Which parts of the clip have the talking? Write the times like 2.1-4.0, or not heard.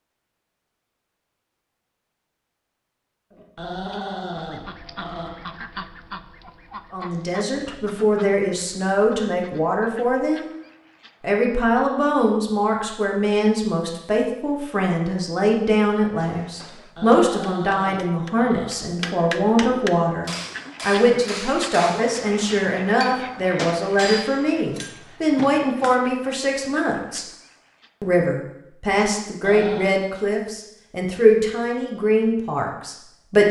6.9-10.5, 11.2-27.2, 28.0-33.4.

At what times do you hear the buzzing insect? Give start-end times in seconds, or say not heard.
not heard.